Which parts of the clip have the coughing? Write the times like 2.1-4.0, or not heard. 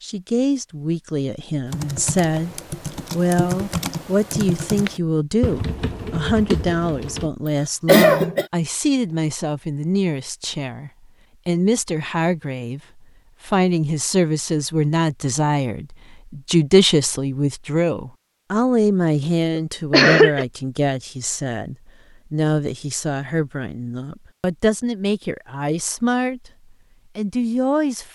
7.8-8.4, 19.6-20.4.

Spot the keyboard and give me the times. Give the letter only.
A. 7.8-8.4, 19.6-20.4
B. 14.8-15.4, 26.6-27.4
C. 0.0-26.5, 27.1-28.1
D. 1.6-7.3
D.